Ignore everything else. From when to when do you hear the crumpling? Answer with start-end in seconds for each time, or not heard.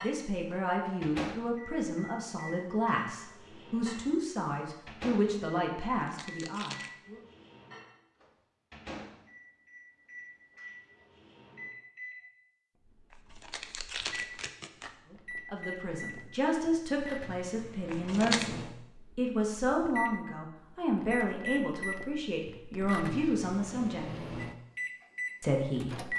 6.0-6.9, 13.1-14.9, 17.9-18.4.